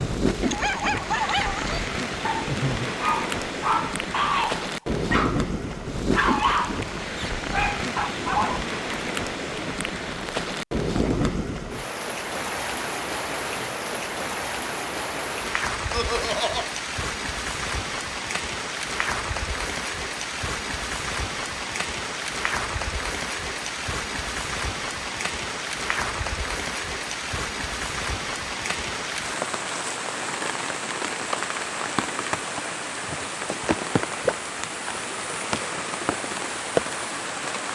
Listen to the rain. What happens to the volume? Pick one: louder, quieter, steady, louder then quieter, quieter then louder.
steady.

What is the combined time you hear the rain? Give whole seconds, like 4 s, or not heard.
38 s.